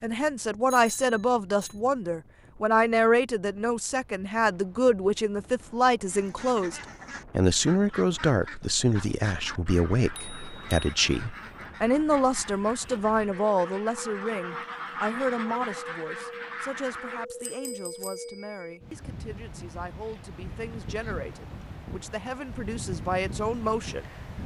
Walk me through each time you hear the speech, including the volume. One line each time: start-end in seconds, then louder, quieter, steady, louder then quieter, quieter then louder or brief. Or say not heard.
0.0-24.4 quieter.